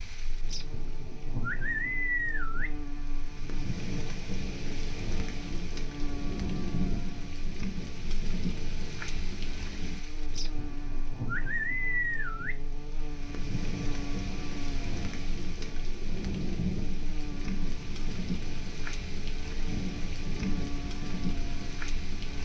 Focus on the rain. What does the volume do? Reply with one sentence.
The volume of the rain stays about the same.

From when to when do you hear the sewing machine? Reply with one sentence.
The sewing machine can't be heard in this clip.